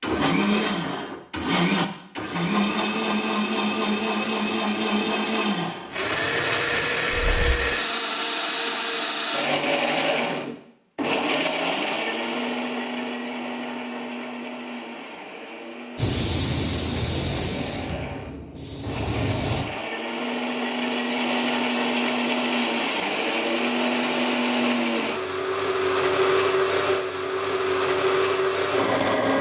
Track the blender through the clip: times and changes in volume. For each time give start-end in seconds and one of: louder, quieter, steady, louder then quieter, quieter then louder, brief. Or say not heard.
0.0-29.3 quieter then louder.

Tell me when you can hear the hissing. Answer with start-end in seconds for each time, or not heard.
15.9-19.6.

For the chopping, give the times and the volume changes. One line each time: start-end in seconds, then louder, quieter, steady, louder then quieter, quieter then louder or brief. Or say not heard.
not heard.